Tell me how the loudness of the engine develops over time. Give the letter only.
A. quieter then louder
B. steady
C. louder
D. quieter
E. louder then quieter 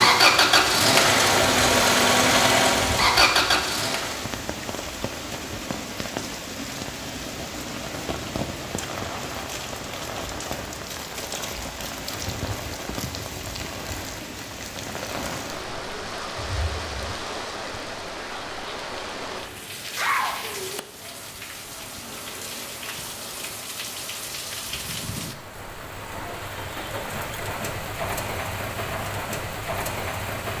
B.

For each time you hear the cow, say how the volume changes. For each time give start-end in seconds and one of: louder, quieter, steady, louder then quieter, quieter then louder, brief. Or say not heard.
not heard.